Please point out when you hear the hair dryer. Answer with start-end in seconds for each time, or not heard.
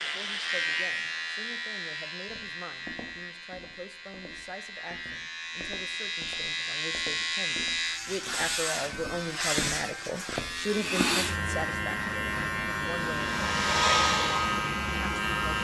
13.1-15.5.